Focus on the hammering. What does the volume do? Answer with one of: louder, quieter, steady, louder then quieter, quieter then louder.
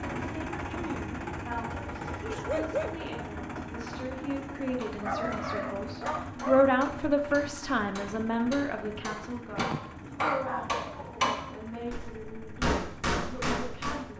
louder.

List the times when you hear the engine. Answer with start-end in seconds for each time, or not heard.
0.0-14.1.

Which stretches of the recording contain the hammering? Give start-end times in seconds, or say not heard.
4.8-14.0.